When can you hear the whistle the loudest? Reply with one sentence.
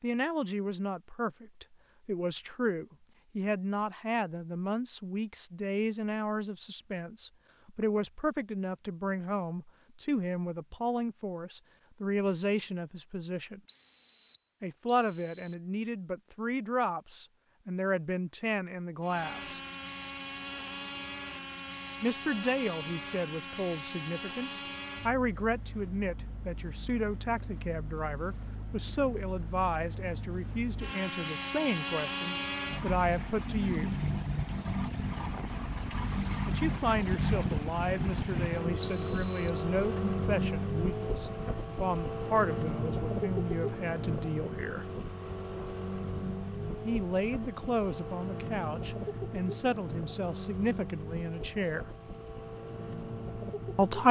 The loudest moment of the whistle is at 39 seconds.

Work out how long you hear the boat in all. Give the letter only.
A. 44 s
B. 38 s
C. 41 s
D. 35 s
D.